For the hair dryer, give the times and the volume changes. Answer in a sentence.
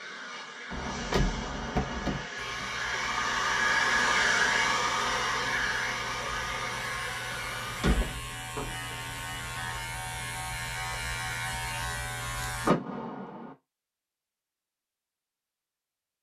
The hair dryer can be heard from 0.0 to 7.8 s, getting louder then quieter.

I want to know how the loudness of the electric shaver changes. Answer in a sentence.
The volume of the electric shaver goes up.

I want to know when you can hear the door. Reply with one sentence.
You can hear the door from 0.7 to 2.2 s, from 7.3 to 8.8 s and from 12.7 to 13.6 s.